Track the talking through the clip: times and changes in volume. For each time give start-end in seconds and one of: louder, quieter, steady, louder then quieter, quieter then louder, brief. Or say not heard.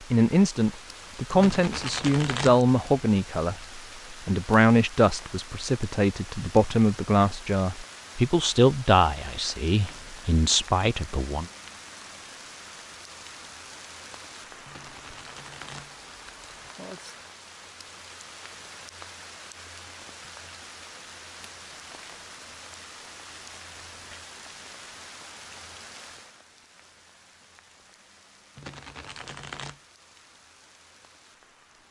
0.1-11.4 steady.